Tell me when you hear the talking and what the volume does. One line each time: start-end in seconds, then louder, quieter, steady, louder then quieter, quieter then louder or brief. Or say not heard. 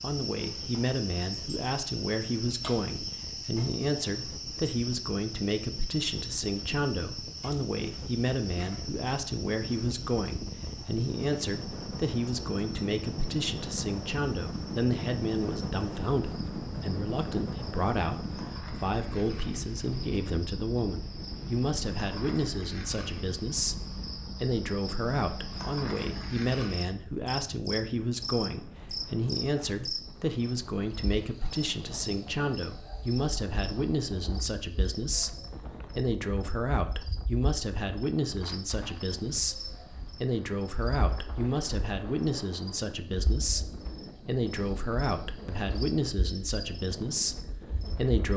0.0-48.3 steady.